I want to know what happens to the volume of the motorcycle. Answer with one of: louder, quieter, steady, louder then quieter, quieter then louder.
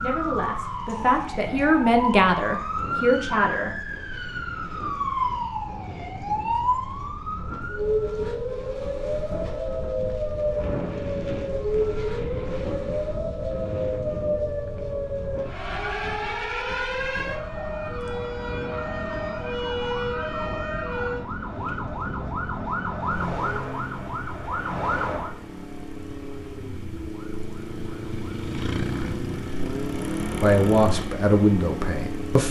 louder.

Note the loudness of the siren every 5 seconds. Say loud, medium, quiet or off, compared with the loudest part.
loud, loud, loud, loud, loud, medium, off.